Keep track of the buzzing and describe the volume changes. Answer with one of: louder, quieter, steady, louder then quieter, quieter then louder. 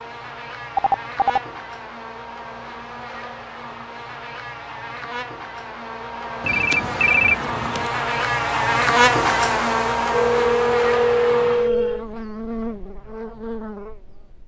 louder then quieter.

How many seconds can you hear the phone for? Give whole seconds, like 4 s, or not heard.
4 s.